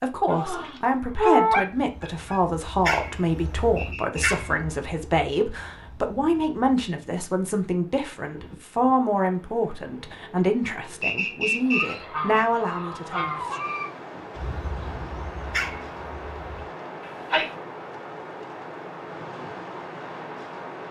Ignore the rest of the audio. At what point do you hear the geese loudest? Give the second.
1 s.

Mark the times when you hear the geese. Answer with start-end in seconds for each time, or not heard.
0.2-2.4, 11.7-13.9.